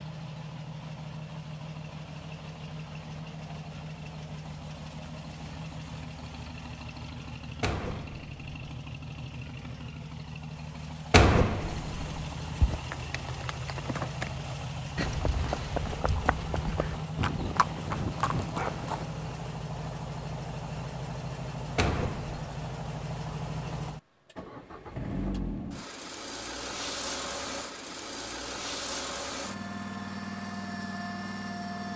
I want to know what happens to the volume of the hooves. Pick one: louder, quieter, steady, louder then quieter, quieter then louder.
louder.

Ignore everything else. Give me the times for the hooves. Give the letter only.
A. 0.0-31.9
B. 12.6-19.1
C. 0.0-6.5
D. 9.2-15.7
B.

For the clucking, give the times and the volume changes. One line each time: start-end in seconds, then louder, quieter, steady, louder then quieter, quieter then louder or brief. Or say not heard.
not heard.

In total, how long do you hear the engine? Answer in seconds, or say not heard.
32 s.